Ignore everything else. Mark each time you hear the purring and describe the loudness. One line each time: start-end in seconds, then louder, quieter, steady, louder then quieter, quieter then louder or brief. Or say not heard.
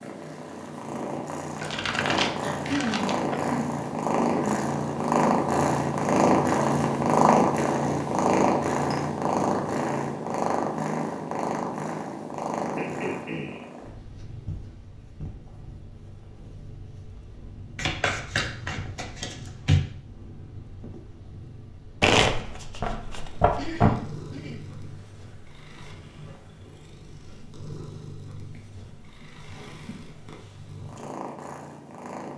0.0-32.3 quieter.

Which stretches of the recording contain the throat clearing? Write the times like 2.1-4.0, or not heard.
2.4-4.7, 12.8-13.7, 23.6-24.6.